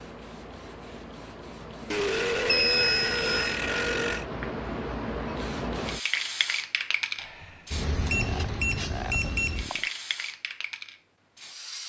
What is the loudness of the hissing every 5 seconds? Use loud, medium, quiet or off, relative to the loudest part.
medium, loud, medium.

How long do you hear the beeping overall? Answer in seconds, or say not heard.
3 s.